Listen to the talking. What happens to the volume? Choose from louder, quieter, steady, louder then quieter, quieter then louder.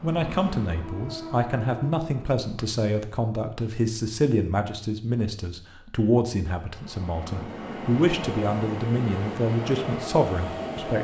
steady.